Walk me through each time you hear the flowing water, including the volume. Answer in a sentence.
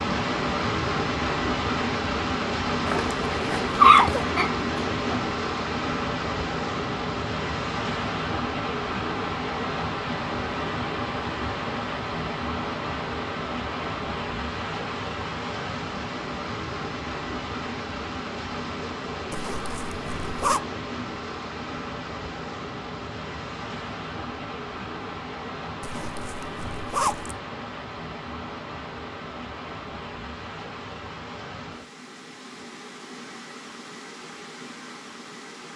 The flowing water can be heard from 0.0 to 35.7 s, getting quieter.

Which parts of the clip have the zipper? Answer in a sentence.
You can hear the zipper from 2.9 to 4.3 s, from 19.3 to 20.6 s and from 25.8 to 27.4 s.